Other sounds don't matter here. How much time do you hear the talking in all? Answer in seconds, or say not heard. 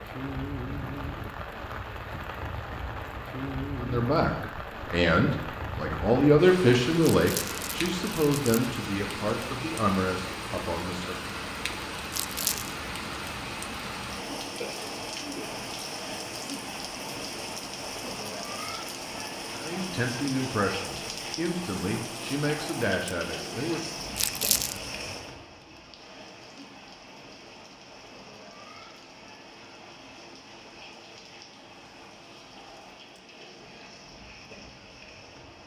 12 s.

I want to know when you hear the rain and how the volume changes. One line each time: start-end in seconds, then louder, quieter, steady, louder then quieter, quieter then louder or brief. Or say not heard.
0.0-35.6 quieter.